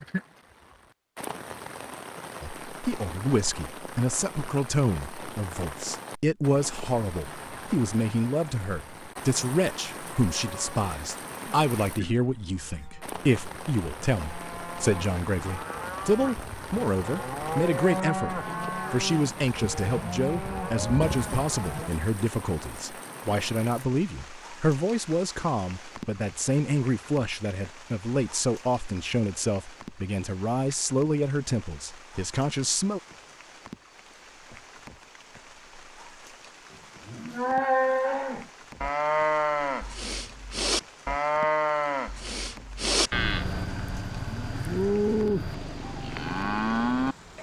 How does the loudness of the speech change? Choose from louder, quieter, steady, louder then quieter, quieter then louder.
steady.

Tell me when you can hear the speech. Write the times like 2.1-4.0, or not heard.
2.4-33.0.